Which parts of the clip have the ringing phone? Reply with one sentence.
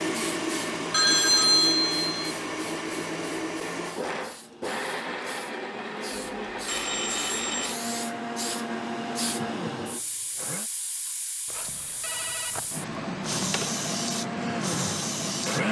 You can hear the ringing phone from 0.9 to 2.4 s, from 6.1 to 7.8 s, from 11.6 to 12.6 s and from 13.2 to 13.7 s.